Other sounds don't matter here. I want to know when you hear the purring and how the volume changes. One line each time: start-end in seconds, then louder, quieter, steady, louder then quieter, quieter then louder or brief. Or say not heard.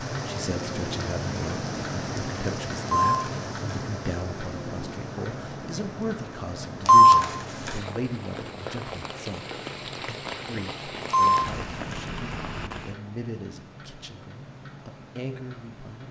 not heard.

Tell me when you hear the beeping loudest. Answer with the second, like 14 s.
7 s.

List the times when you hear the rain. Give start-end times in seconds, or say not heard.
0.0-13.0.